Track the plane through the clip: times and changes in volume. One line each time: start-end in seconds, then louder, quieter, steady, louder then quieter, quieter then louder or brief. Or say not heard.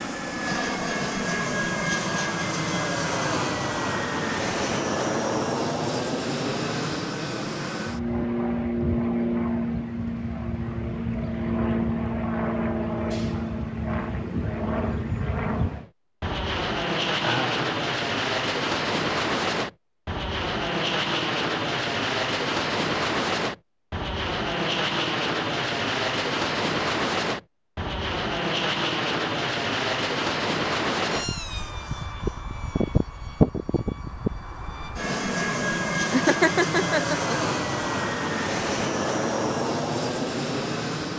0.0-41.1 steady.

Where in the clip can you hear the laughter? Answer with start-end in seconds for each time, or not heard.
17.2-17.6, 36.1-37.5.